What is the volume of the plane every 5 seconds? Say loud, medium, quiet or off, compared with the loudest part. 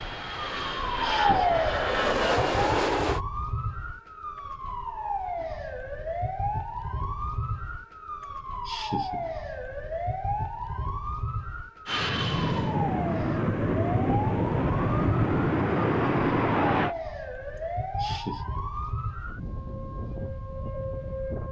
loud, off, loud, loud, off.